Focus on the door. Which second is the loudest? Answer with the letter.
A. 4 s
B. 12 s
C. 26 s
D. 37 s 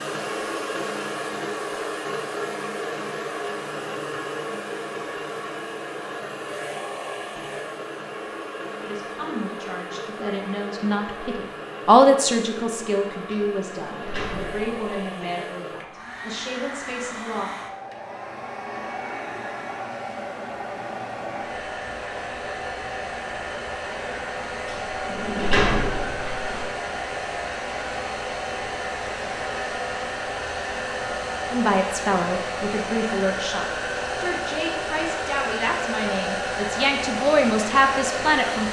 C.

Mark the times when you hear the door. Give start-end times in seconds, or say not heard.
13.3-14.8, 24.6-26.6.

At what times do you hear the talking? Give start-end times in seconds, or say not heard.
8.8-17.5, 31.5-38.6.